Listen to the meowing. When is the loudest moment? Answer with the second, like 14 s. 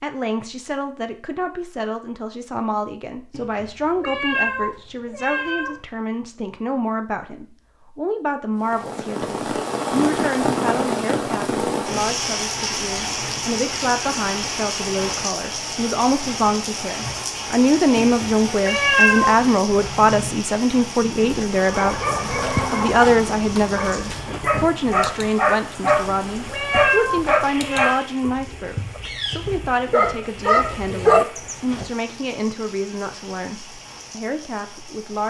19 s.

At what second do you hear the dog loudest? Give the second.
31 s.